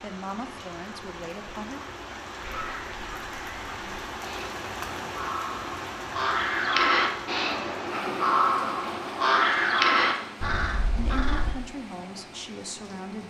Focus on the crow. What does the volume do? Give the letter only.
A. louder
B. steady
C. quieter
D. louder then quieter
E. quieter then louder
A.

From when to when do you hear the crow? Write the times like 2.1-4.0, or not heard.
2.4-11.6.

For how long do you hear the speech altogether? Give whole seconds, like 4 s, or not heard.
4 s.